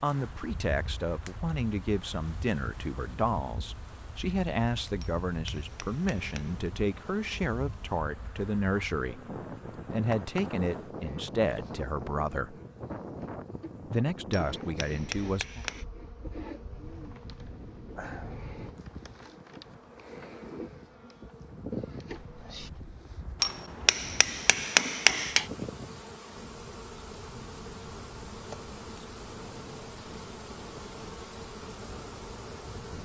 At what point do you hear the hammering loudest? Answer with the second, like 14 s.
25 s.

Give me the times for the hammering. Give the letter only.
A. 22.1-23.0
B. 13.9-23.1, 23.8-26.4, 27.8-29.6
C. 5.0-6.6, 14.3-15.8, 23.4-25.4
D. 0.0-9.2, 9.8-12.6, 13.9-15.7
C.